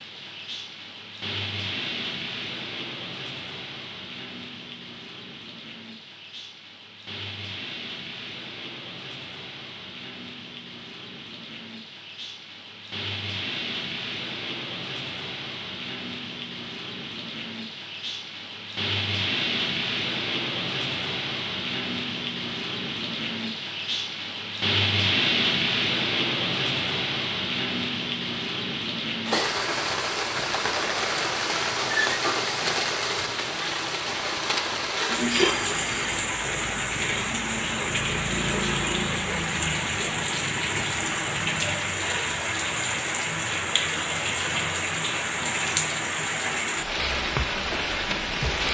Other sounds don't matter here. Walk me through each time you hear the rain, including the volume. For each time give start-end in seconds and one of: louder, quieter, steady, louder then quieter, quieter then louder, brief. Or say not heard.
0.0-48.6 louder.